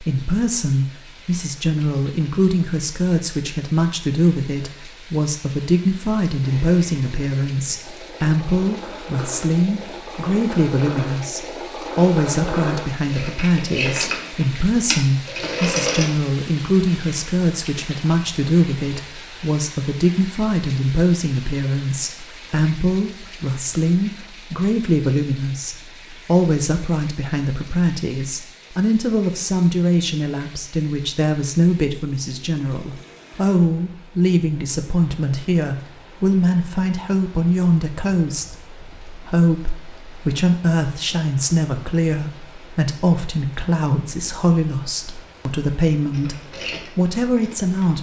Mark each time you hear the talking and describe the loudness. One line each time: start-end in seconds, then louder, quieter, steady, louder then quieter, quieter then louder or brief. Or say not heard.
0.0-47.9 steady.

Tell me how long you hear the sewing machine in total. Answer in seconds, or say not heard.
12 s.